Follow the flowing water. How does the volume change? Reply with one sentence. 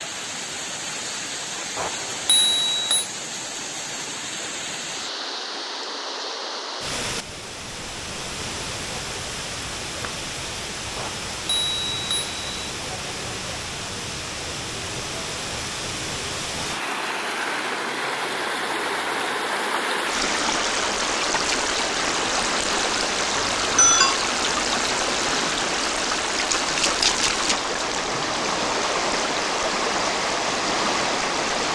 The volume of the flowing water goes up.